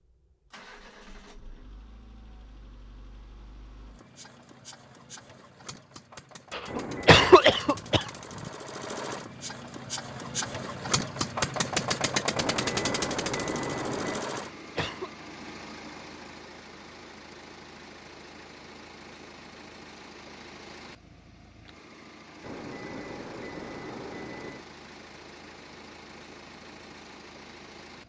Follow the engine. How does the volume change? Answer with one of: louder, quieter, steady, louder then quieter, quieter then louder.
louder then quieter.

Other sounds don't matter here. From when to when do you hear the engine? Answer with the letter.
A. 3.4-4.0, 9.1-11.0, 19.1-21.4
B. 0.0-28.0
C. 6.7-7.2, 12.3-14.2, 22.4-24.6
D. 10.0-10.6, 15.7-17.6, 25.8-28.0
B.